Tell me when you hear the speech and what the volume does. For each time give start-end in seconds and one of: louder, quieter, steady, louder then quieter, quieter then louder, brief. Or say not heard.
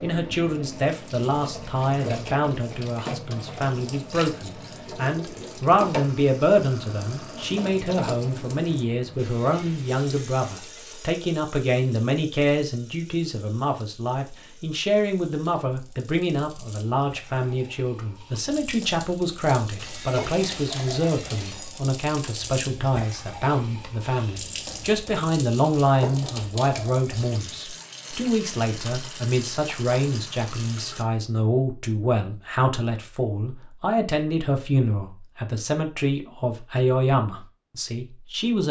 0.0-38.6 steady.